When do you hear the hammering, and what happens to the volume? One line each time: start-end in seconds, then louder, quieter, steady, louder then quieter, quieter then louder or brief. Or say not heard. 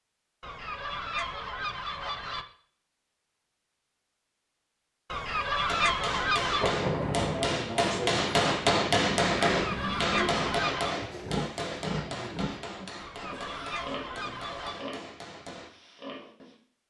5.5-15.7 louder then quieter.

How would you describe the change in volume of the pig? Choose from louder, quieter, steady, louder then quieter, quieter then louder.
quieter.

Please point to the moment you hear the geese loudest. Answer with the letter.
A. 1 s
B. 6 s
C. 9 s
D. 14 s
B.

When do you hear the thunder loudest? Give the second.
7 s.